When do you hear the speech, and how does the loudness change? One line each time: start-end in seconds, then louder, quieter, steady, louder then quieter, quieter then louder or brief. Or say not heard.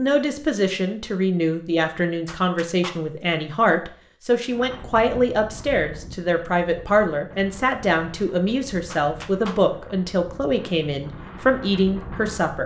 0.0-12.6 steady.